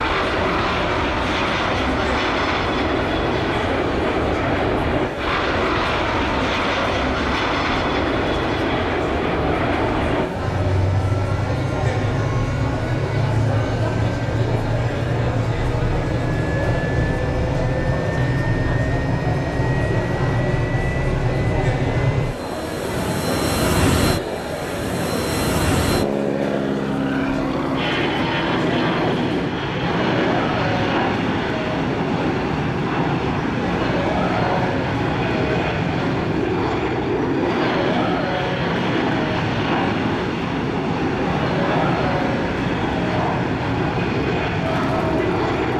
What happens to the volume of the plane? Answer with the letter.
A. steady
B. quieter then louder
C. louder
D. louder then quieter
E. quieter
A.